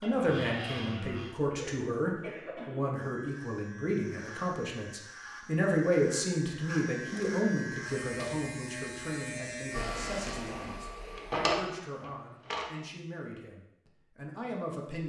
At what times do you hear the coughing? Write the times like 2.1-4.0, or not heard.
1.5-3.0.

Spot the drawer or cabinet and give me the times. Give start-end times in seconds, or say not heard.
0.0-1.4, 6.9-8.4, 11.1-12.7.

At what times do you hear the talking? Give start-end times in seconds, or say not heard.
0.0-15.0.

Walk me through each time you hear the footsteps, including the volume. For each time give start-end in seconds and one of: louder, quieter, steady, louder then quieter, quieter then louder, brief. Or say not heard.
not heard.